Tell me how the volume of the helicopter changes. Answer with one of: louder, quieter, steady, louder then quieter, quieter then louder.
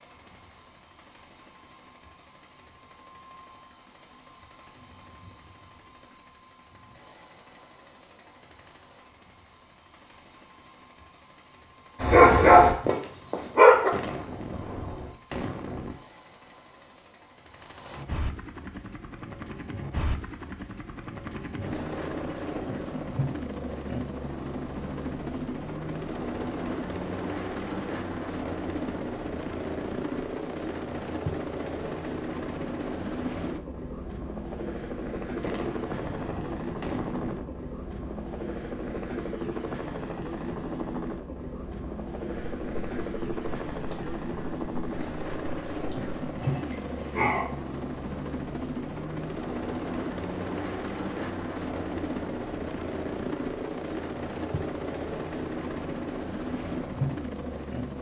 louder.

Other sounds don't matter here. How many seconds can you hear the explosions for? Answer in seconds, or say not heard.
4 s.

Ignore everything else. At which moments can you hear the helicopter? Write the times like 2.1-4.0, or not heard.
0.0-57.9.